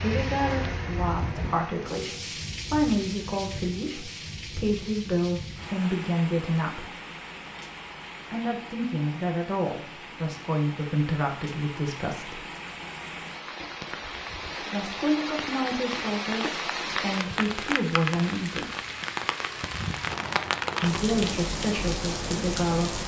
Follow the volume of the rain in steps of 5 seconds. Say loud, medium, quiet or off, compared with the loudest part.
medium, medium, medium, loud, loud.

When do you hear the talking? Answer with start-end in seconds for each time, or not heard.
0.0-6.9, 8.3-12.4, 14.6-18.7, 20.8-23.0.